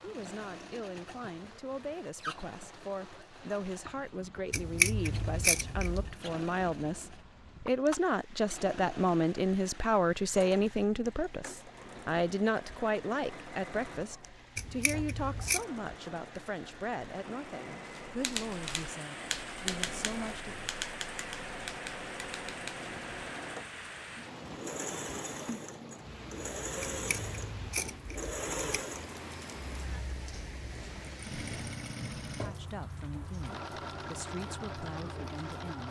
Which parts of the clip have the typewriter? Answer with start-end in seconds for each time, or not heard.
18.1-22.9.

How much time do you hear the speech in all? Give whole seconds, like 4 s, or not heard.
24 s.